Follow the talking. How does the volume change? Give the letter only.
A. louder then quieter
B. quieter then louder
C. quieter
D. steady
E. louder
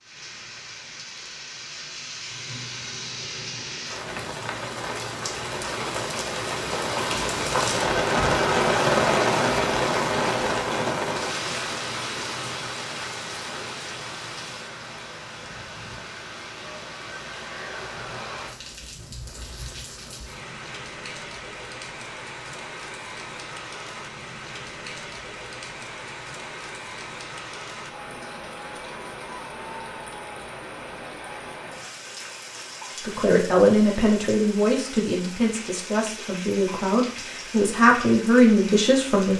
B.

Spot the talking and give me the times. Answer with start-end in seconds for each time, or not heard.
33.0-39.3.